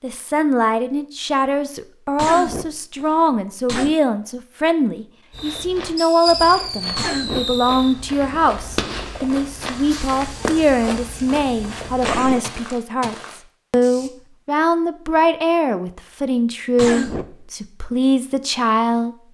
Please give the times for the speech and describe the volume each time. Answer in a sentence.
You can hear the speech from 0.0 to 19.1 s, at a steady volume.